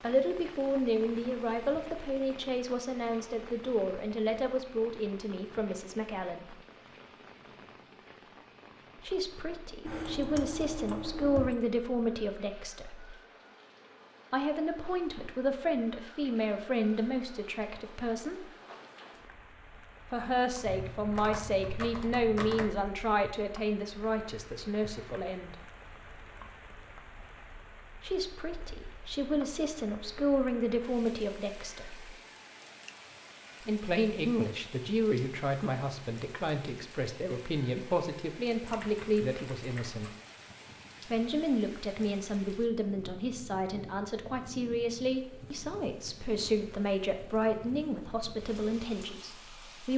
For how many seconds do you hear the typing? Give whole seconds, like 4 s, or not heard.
5 s.